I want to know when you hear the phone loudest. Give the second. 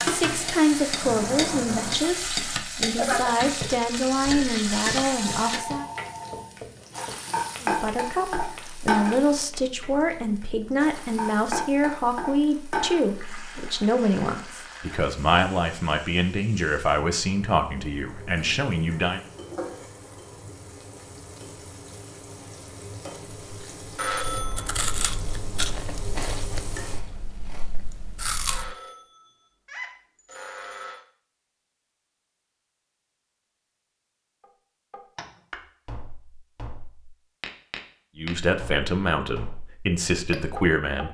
24 s.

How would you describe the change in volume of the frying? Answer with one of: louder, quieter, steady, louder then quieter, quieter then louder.
quieter.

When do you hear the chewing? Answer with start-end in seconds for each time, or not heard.
23.4-28.8.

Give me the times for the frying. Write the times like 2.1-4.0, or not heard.
0.0-27.0.